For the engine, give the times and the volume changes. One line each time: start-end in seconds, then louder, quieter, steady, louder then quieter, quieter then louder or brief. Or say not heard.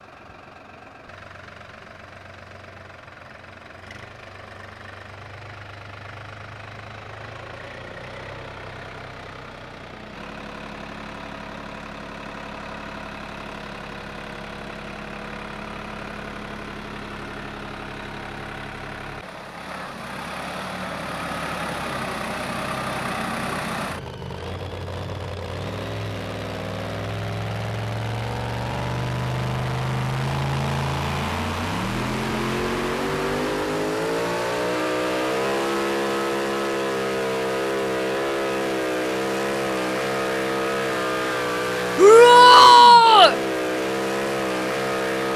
0.0-45.3 louder.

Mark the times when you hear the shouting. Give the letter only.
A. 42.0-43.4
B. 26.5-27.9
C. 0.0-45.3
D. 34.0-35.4
A.